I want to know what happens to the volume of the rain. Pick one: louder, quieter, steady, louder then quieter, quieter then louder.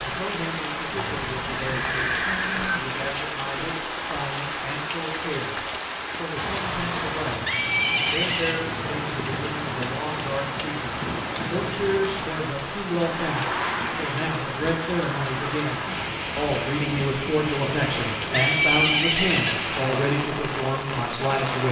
steady.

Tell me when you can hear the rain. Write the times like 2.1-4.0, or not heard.
0.0-21.6.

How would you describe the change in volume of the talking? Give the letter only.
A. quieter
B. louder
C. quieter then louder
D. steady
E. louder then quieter
B.